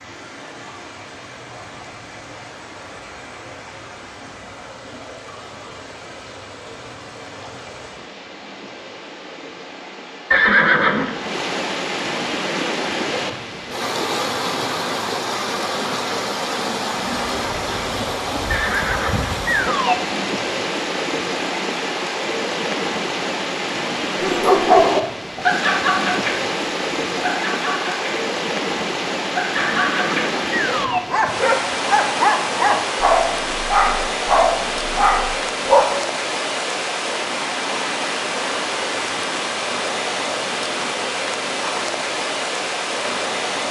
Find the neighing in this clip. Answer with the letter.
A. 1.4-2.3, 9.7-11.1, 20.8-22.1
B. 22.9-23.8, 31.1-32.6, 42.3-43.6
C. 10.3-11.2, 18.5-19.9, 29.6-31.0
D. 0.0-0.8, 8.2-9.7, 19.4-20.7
C.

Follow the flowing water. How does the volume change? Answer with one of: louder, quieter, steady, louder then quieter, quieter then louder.
louder.